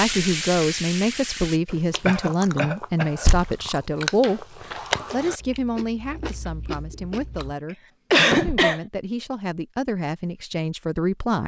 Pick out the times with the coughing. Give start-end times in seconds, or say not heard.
2.0-3.2, 8.1-8.8.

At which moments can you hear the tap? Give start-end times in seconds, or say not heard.
0.0-1.6.